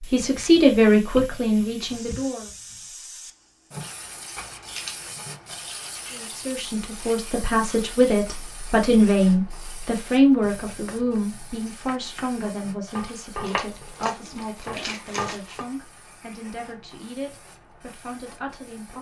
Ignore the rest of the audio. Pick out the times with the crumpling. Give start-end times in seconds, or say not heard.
4.3-5.0, 13.1-15.7.